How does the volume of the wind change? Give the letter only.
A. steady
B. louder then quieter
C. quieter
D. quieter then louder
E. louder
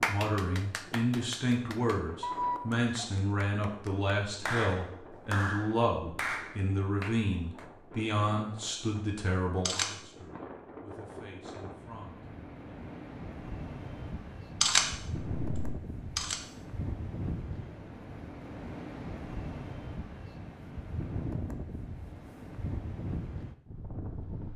E.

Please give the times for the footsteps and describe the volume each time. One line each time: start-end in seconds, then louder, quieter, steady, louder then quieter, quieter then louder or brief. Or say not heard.
not heard.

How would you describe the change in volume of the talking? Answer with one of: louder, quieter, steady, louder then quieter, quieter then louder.
quieter.